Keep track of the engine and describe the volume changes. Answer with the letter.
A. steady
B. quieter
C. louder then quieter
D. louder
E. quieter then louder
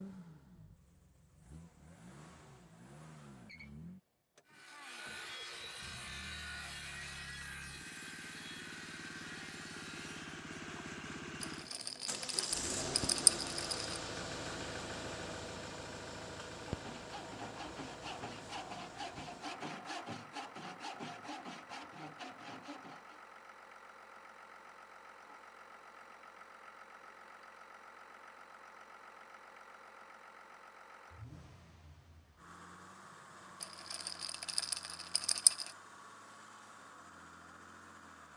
C.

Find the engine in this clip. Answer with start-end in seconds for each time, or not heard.
0.0-38.3.